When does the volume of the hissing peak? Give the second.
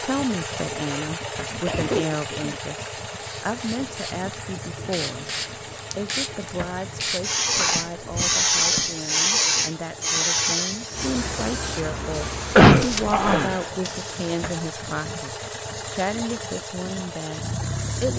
9 s.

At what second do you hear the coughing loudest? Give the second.
13 s.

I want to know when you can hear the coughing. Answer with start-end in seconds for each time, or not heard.
0.8-2.5, 7.5-8.9, 12.6-13.6.